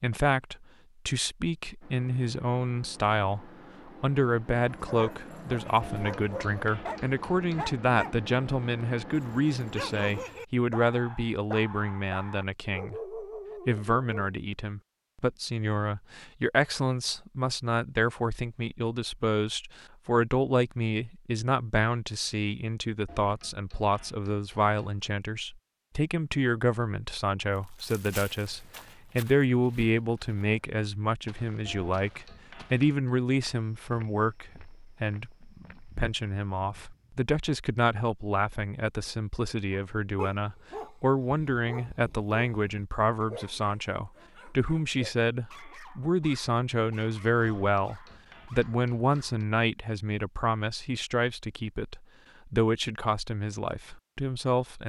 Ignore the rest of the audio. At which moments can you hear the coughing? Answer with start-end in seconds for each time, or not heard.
not heard.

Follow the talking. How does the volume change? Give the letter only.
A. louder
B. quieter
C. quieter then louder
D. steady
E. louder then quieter
D.